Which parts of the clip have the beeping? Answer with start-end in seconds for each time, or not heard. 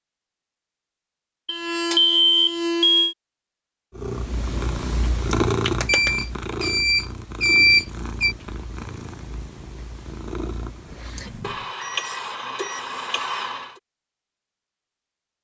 1.4-3.1, 5.8-8.3, 11.4-13.7.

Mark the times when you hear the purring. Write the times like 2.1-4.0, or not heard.
4.0-11.7.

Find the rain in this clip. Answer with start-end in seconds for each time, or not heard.
not heard.